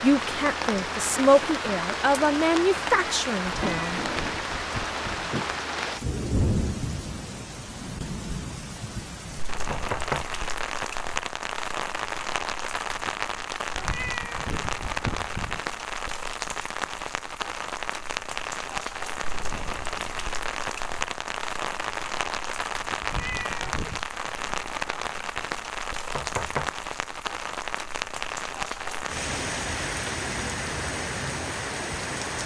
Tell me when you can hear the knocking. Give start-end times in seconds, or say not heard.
9.6-10.2, 26.1-26.7.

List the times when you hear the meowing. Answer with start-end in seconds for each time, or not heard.
3.6-5.3, 13.7-15.6, 23.0-24.1.